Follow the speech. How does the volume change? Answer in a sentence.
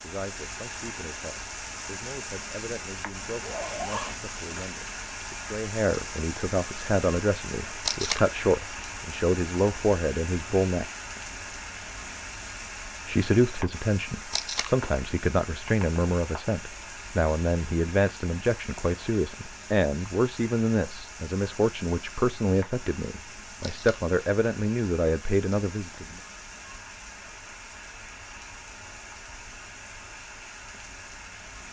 The loudness of the speech goes up.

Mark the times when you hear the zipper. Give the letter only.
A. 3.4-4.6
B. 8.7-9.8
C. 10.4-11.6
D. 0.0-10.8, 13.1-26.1
A.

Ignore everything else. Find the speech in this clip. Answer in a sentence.
The speech can be heard from 0.0 to 10.8 s and from 13.1 to 26.1 s.